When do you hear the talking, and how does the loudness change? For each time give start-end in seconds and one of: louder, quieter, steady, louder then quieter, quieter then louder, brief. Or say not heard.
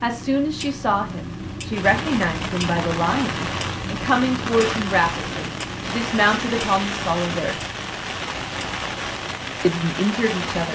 0.0-7.6 steady
9.6-10.7 brief.